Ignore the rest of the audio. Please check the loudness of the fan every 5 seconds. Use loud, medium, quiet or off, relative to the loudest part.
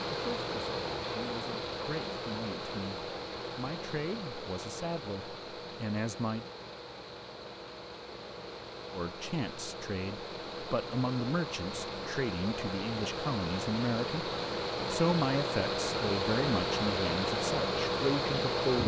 medium, quiet, medium, loud.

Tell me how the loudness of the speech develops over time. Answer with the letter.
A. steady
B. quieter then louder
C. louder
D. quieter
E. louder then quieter
C.